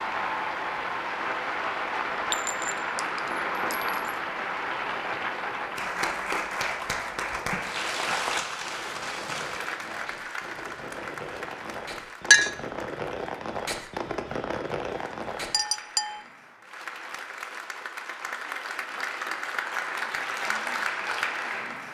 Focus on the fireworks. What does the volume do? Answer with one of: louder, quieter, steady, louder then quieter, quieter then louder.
louder.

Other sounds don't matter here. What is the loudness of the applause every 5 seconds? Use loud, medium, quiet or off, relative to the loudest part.
loud, loud, medium, medium, loud.